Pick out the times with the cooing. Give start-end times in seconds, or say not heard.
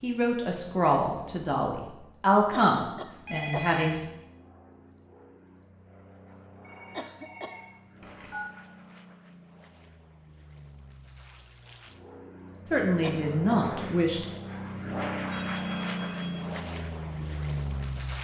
not heard.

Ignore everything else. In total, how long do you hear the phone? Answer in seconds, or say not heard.
4 s.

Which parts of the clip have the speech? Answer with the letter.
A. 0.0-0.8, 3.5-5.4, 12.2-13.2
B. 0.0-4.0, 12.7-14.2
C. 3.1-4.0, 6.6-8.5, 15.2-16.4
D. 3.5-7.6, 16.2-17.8
B.